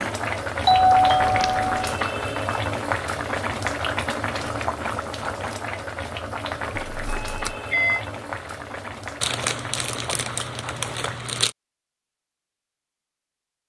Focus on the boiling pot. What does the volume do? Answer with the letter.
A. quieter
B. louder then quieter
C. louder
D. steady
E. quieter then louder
A.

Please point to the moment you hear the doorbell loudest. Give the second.
1 s.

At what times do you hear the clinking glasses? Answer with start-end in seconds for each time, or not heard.
not heard.